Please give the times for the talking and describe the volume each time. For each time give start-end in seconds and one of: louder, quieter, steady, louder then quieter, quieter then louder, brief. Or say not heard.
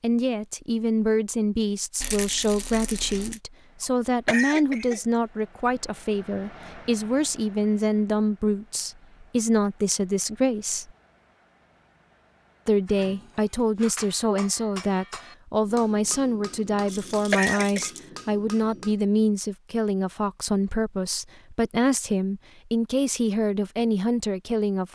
0.0-10.9 steady
12.7-24.8 steady.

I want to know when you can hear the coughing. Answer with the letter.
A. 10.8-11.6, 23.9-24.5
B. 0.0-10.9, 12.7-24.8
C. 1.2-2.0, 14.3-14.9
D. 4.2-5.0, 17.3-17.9
D.